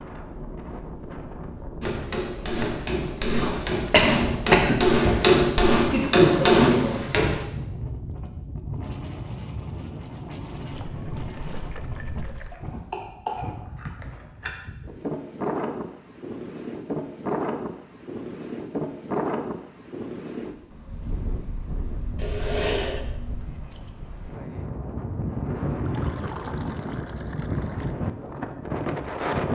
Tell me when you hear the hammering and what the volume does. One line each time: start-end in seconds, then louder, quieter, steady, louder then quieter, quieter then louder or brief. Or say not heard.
1.8-7.5 louder.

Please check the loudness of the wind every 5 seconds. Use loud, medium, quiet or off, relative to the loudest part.
medium, medium, medium, loud, medium, loud.